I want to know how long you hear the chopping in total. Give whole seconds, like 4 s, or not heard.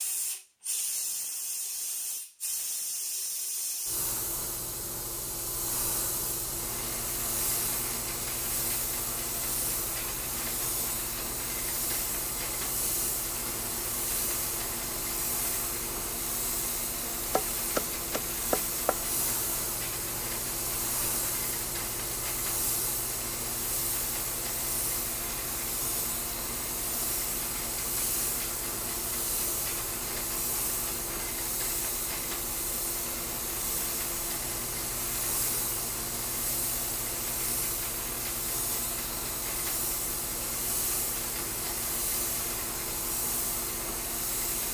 2 s.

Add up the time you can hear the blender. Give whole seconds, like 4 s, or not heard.
38 s.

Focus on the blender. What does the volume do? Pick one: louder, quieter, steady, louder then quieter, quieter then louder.
steady.